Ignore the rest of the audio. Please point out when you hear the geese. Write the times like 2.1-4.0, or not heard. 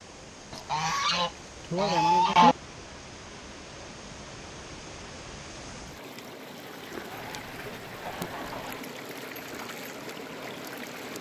0.5-2.5, 7.1-8.8.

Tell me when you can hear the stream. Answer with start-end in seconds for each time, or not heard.
0.0-11.1.